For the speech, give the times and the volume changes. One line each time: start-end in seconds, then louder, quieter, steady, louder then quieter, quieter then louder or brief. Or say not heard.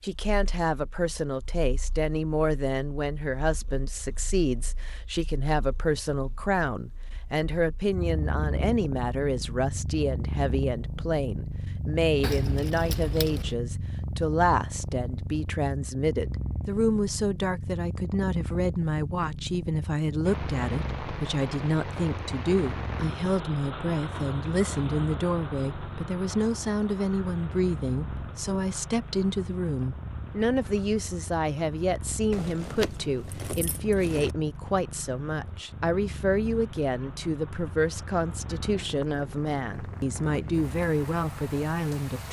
0.0-42.2 steady.